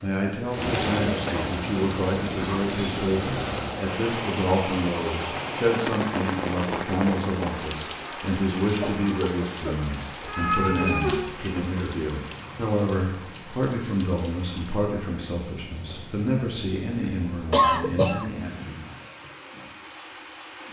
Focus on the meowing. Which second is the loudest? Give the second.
11 s.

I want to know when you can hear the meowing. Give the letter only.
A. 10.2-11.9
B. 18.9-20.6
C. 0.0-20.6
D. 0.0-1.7
A.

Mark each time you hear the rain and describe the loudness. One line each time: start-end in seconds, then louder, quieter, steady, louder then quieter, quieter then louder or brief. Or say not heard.
0.0-20.6 quieter.